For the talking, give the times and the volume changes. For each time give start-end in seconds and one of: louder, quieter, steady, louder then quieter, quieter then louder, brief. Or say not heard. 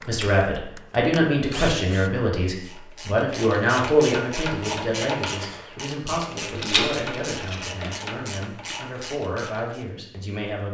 0.1-10.6 quieter.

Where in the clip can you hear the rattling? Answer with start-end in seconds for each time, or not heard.
6.5-7.7.